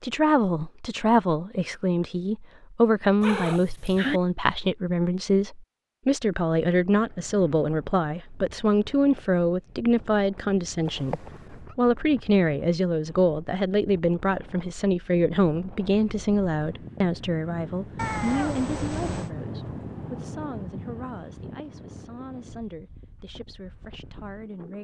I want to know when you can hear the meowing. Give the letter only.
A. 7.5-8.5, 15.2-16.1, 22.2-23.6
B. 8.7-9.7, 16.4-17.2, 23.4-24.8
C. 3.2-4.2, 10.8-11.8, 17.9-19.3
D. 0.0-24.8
C.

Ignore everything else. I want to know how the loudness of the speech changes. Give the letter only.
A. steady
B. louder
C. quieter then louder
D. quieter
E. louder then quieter
D.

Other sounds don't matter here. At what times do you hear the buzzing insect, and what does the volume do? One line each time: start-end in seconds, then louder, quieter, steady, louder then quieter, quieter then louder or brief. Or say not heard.
not heard.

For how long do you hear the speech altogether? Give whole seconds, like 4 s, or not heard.
25 s.